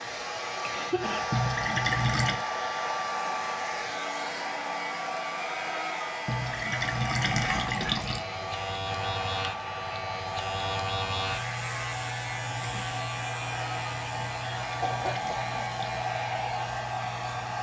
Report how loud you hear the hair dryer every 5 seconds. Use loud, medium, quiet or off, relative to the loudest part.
loud, loud, medium, loud.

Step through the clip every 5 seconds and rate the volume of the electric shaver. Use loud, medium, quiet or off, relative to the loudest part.
medium, loud, loud, loud.